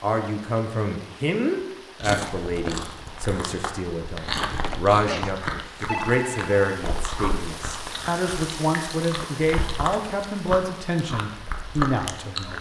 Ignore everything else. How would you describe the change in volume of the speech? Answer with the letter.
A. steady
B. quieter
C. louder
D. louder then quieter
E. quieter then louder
A.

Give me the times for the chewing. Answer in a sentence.
The chewing can be heard from 2.0 to 12.5 s.